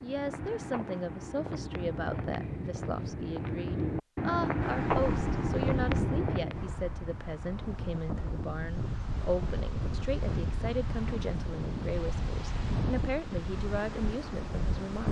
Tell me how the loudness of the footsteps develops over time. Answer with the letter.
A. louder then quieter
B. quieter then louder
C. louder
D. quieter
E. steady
C.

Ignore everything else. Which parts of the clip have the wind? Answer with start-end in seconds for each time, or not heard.
4.6-15.0.